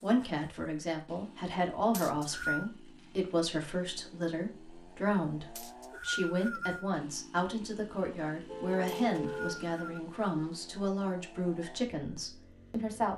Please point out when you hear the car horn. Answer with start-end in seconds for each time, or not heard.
8.4-9.6.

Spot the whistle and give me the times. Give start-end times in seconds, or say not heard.
1.9-2.7, 5.5-6.9, 8.8-10.0.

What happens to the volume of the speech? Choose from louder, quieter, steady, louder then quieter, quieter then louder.
steady.